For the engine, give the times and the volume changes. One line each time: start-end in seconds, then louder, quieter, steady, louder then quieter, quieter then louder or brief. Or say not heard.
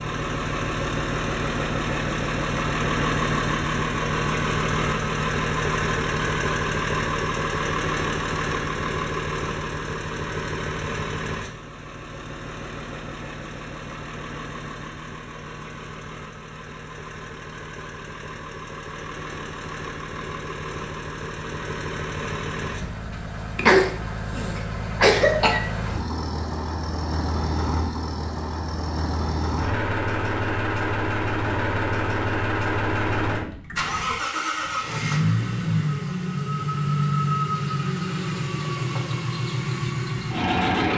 0.0-40.9 quieter then louder.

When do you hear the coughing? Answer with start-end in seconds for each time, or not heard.
23.6-25.6.